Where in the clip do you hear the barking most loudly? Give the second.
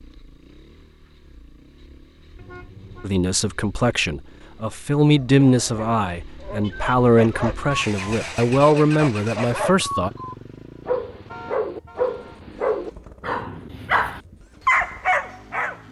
15 s.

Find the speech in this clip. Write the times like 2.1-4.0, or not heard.
3.0-10.1.